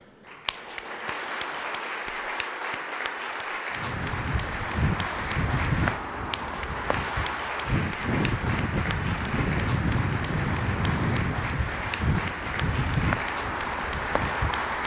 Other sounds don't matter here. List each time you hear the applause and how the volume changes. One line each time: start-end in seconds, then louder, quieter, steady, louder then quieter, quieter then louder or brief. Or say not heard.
0.0-14.8 steady.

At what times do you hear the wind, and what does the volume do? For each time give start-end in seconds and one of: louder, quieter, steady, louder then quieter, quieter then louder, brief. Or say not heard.
3.8-14.8 steady.